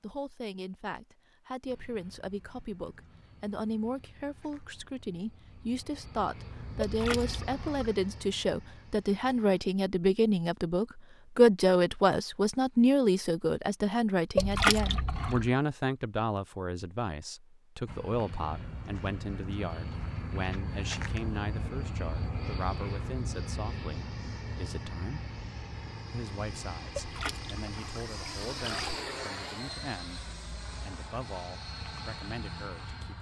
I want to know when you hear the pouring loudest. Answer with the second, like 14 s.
15 s.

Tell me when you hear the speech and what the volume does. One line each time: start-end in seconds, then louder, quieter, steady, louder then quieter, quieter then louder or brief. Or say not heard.
0.0-25.2 louder then quieter
26.1-33.1 steady.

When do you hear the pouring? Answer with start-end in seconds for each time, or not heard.
6.8-8.0, 14.3-15.5, 26.9-28.9.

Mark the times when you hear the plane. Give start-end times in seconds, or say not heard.
1.6-9.6, 17.9-33.1.